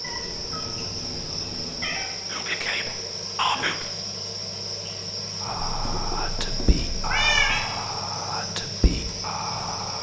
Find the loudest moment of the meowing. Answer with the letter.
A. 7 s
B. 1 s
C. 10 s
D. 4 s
A.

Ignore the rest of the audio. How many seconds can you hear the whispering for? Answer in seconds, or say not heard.
6 s.